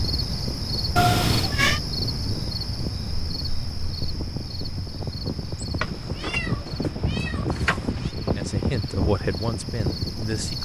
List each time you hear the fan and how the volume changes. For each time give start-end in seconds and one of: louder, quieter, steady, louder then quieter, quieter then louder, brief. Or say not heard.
0.0-10.6 louder.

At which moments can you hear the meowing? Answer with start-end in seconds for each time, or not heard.
0.9-1.8, 5.8-8.1.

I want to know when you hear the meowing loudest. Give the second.
1 s.